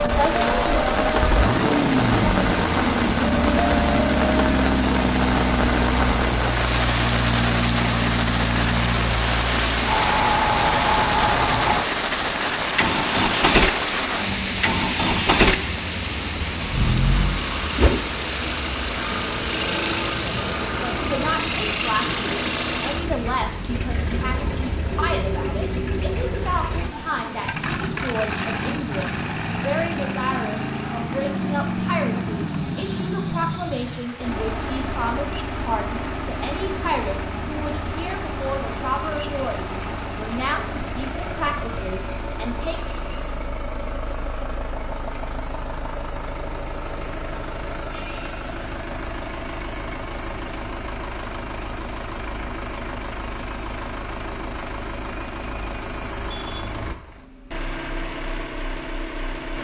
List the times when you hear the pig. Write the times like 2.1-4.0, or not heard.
not heard.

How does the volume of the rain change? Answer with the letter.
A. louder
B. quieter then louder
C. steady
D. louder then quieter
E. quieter
E.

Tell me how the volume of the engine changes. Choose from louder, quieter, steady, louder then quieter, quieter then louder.
quieter.